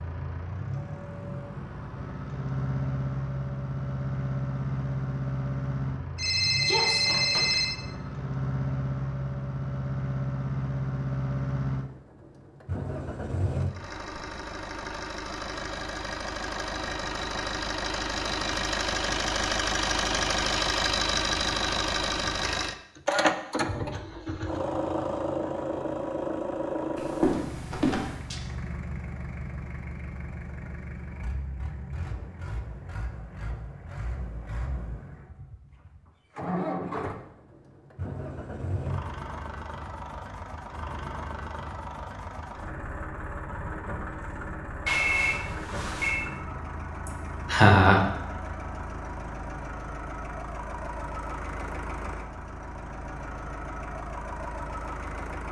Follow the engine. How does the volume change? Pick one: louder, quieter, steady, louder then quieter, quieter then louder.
quieter.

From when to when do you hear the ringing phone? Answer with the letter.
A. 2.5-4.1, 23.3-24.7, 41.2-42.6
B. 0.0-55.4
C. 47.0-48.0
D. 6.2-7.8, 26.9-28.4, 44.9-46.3
D.